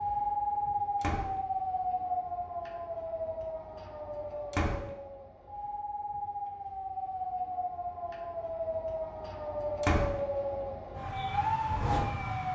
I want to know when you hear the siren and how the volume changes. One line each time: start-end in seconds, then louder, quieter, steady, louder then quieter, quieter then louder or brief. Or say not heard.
0.0-12.5 quieter then louder.